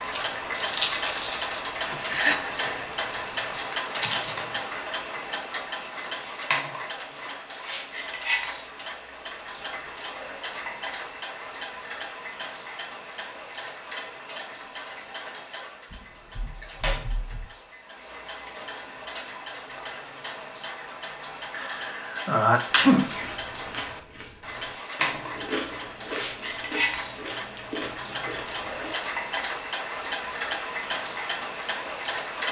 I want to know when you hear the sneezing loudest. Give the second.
23 s.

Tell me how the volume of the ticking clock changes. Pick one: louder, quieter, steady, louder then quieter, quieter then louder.
quieter then louder.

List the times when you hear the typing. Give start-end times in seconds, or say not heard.
15.9-17.5.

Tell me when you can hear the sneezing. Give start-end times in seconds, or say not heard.
2.0-2.9, 21.5-23.1.